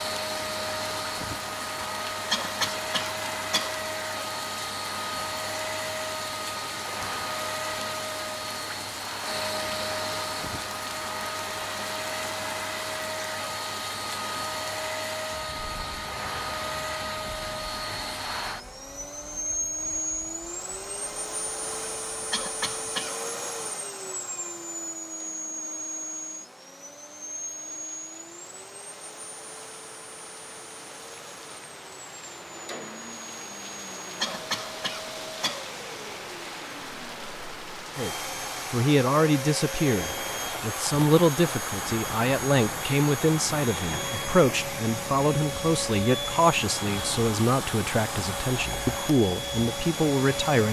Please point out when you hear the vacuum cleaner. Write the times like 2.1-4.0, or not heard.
0.0-50.6.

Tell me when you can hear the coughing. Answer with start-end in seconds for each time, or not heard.
2.3-3.8, 22.3-23.1, 34.2-35.6.